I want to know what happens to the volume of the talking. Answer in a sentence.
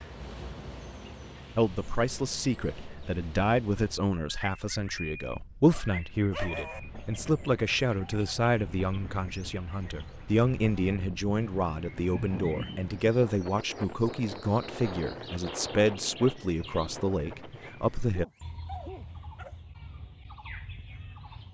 The volume of the talking stays about the same.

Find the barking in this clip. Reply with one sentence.
The barking can be heard from 5.7 to 6.8 s and from 18.1 to 19.6 s.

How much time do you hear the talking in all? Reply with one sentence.
You can hear the talking for 17 seconds altogether.